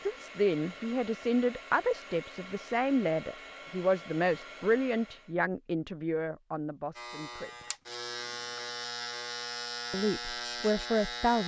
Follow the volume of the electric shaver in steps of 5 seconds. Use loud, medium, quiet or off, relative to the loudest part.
off, loud, loud.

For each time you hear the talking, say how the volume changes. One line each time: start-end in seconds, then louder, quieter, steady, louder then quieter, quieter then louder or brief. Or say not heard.
0.0-7.7 quieter
9.9-11.4 brief.